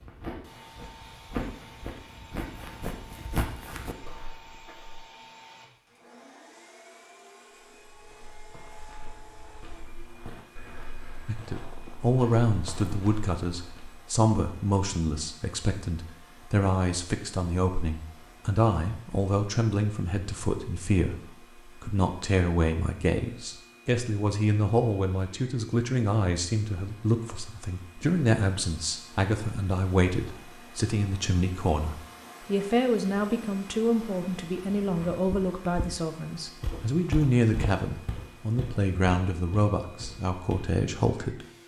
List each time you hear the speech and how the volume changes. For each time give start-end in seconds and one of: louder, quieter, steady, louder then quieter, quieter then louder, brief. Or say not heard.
11.2-41.6 steady.